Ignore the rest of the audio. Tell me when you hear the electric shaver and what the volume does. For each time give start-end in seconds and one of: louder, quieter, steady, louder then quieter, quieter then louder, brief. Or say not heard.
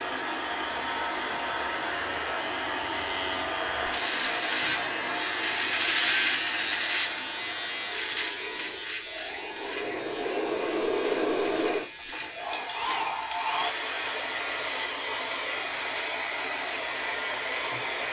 0.0-18.0 louder then quieter.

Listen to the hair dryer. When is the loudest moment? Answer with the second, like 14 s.
11 s.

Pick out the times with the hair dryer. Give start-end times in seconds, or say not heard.
0.0-18.0.